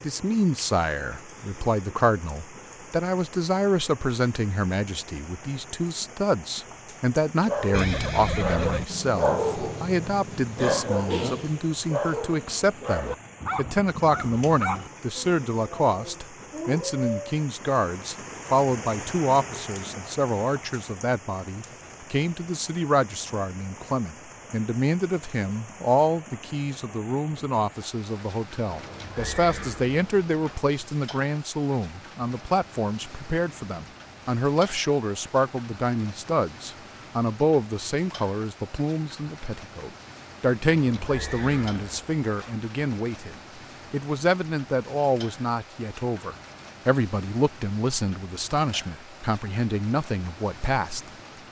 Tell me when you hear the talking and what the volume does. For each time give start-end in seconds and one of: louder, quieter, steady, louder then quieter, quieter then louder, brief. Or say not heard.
0.0-51.0 steady.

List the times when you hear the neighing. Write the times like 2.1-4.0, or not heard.
7.7-8.8, 28.7-30.6, 40.6-42.5.